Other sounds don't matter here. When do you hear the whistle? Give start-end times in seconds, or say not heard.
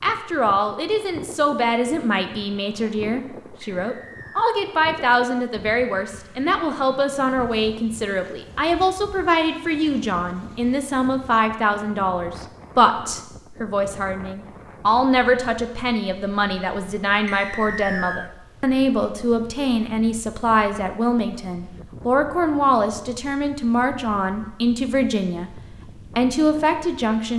3.8-4.5, 17.2-18.3.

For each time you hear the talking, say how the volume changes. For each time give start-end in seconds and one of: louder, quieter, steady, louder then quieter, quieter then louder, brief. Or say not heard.
0.0-25.5 steady
26.1-27.3 brief.